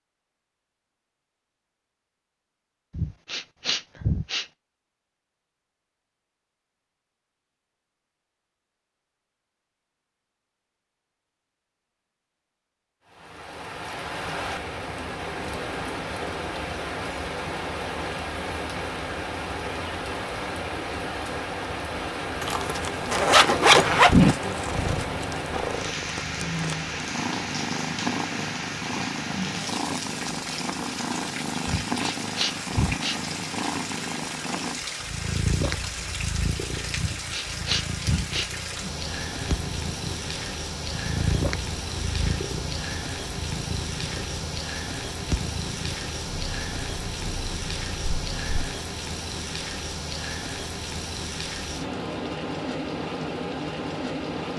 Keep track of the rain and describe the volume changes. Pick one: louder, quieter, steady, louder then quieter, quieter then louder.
steady.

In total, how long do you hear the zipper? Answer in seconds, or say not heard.
2 s.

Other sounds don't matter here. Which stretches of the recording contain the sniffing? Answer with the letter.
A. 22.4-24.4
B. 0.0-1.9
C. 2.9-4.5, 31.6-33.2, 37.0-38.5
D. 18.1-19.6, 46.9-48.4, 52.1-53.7
C.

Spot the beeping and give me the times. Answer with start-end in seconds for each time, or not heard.
not heard.